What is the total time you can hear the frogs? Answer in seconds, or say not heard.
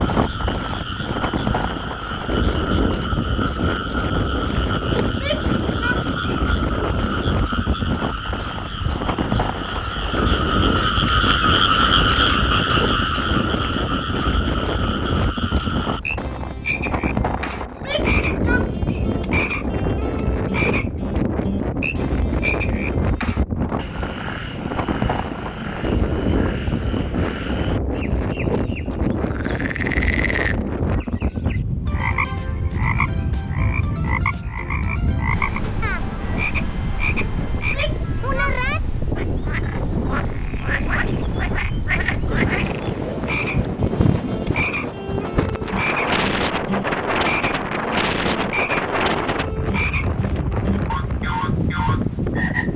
53 s.